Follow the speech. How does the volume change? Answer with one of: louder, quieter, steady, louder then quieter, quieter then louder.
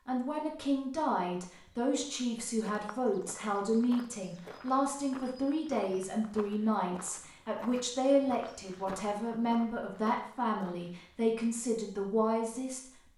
steady.